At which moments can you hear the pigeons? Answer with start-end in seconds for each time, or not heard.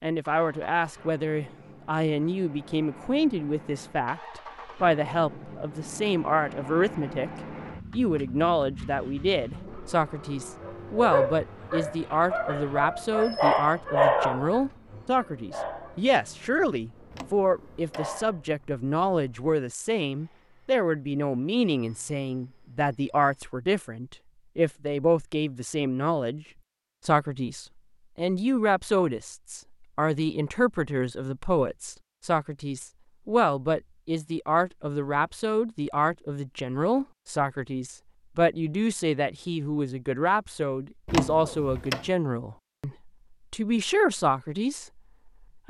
not heard.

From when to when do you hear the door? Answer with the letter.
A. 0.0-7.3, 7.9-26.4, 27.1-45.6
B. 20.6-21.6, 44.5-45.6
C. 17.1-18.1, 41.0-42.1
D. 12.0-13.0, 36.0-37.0
C.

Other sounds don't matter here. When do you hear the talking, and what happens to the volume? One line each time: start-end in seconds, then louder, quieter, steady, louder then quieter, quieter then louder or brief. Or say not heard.
0.0-7.3 steady
7.9-26.4 steady
27.1-45.6 steady.